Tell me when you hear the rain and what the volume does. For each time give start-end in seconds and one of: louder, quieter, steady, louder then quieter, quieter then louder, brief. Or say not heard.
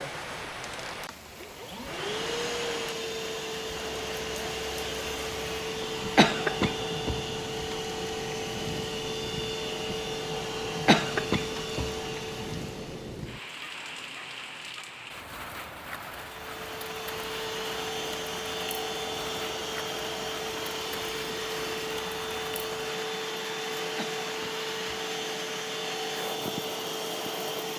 0.0-27.7 steady.